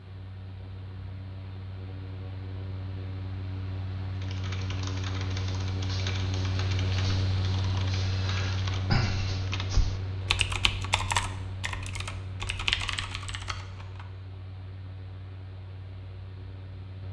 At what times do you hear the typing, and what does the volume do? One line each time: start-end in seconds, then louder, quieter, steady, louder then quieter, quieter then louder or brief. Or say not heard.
4.2-14.1 louder.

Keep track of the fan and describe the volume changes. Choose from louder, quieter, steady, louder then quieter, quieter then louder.
louder then quieter.